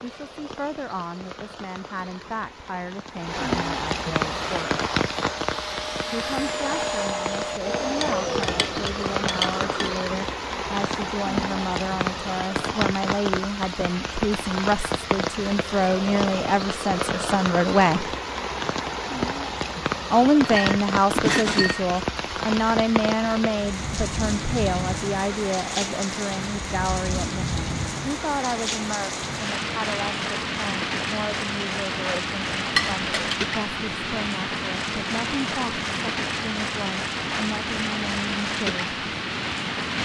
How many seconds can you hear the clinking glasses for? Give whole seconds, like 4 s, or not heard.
4 s.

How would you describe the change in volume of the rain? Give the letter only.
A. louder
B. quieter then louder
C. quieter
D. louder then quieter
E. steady
E.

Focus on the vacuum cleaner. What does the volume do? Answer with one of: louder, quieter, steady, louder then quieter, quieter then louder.
louder.